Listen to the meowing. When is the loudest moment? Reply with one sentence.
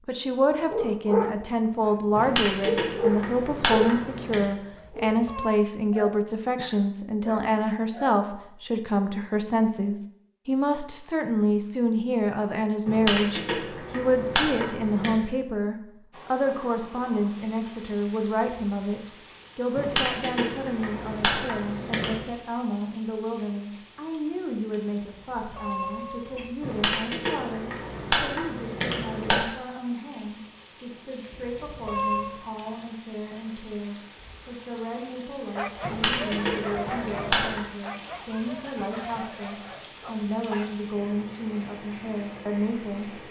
The loudest moment of the meowing is at 32 seconds.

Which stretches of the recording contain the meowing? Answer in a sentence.
You can hear the meowing from 4.7 to 5.5 s, from 25.1 to 26.6 s and from 31.3 to 32.4 s.